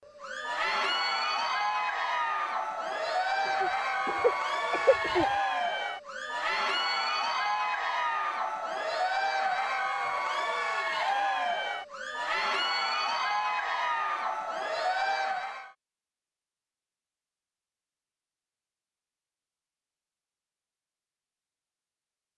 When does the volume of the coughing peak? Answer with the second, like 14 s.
5 s.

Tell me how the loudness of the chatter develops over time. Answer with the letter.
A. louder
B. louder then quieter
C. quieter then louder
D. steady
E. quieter
D.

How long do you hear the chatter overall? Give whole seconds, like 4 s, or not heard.
16 s.